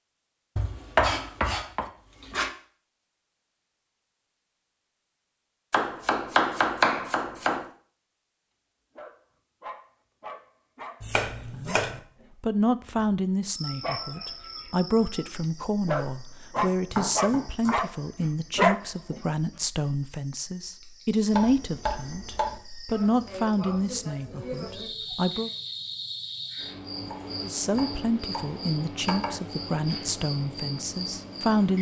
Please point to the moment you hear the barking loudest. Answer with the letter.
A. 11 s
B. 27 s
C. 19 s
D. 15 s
C.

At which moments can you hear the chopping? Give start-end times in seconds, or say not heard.
0.6-2.5, 5.7-7.7, 11.0-12.0, 16.6-17.8, 21.3-22.6, 27.1-29.4.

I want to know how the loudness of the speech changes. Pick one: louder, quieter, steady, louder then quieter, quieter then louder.
steady.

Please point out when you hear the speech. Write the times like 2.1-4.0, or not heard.
11.5-25.5, 27.4-31.7.